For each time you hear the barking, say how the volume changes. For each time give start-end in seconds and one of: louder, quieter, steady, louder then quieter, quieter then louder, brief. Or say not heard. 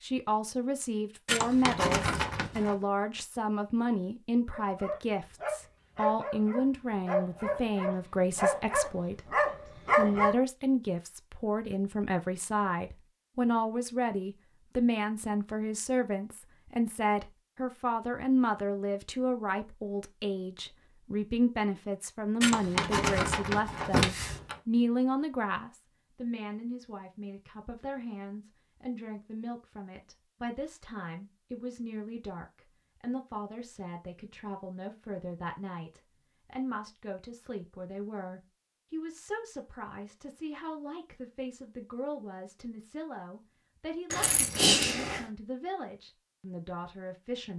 4.5-10.3 louder.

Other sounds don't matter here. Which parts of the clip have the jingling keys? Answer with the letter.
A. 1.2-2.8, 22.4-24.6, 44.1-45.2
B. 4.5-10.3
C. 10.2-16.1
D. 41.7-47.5
A.